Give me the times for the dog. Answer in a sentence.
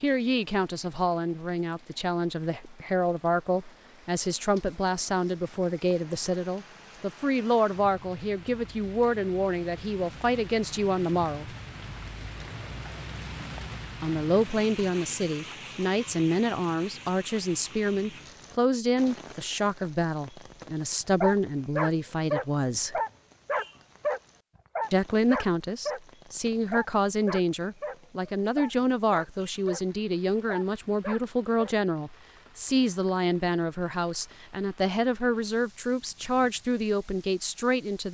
You can hear the dog from 21.2 to 26.0 s, from 26.7 to 27.9 s, from 28.6 to 29.8 s and from 30.4 to 31.8 s.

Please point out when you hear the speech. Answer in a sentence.
You can hear the speech from 0.0 to 11.6 s, from 14.0 to 23.0 s and from 24.9 to 38.0 s.